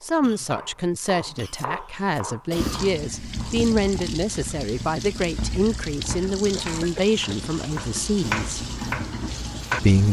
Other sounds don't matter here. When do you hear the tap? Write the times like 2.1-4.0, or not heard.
2.5-10.0.